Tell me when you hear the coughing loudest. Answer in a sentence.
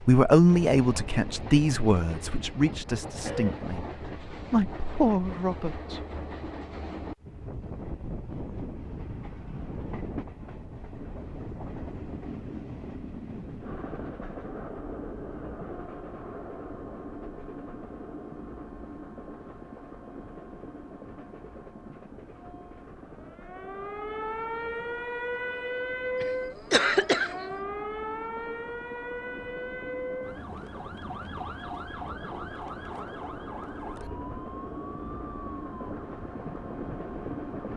The volume of the coughing peaks at 27 seconds.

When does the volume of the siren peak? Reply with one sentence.
The loudest moment of the siren is at 26 seconds.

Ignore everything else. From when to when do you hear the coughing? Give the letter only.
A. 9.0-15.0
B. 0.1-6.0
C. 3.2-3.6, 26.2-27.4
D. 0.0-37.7
C.